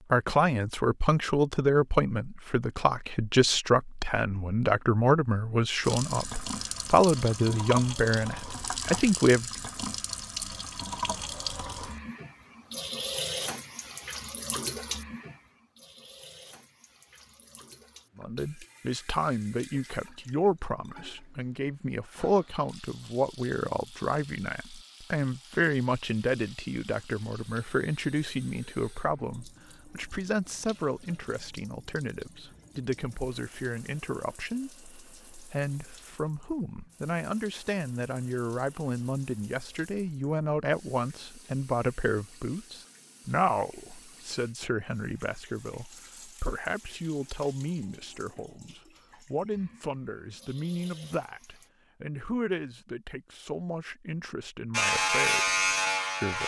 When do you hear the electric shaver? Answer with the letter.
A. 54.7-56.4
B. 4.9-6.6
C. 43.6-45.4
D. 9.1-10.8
A.